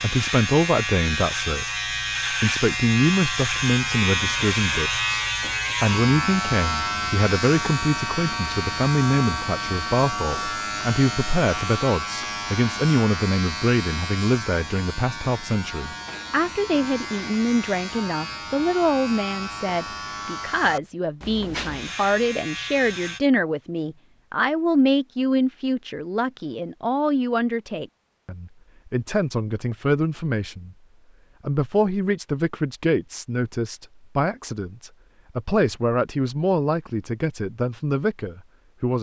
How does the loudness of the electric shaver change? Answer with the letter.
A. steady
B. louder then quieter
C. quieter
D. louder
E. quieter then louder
C.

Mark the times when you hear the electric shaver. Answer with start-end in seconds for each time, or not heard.
0.0-23.2.